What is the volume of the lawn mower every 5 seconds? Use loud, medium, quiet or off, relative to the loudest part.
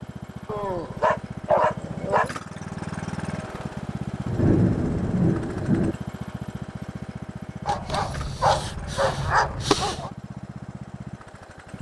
loud, loud, medium.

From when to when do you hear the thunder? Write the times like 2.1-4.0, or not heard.
4.2-6.0.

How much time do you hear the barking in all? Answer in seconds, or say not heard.
4 s.